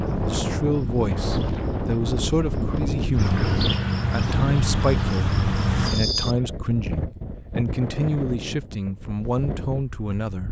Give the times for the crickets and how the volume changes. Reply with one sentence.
The crickets can be heard from 0.0 to 6.5 s, getting louder.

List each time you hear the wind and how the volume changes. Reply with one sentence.
You can hear the wind from 0.0 to 10.4 s, getting quieter.